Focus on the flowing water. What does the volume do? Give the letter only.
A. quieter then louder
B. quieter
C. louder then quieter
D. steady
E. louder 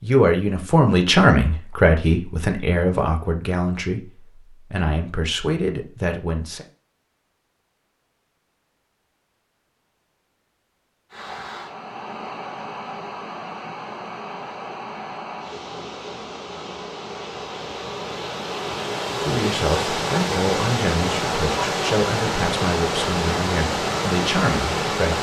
E.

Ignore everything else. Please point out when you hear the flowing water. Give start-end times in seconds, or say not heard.
11.1-25.1.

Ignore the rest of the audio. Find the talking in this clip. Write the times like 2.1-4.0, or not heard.
0.0-6.7, 19.2-25.1.